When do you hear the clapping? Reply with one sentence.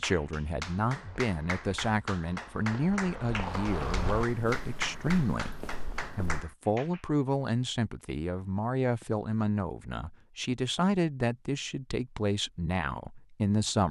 You can hear the clapping from 0.0 to 7.0 s.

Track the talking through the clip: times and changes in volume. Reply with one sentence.
The talking can be heard from 0.0 to 13.8 s, at a steady volume.